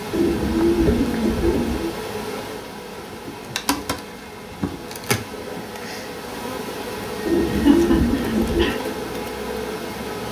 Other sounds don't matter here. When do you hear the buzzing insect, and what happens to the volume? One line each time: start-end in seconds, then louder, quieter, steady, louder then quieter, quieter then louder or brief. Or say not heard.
0.0-10.2 steady.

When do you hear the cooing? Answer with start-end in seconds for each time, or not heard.
0.1-1.9, 7.2-8.8.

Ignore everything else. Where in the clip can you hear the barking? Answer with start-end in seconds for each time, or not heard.
not heard.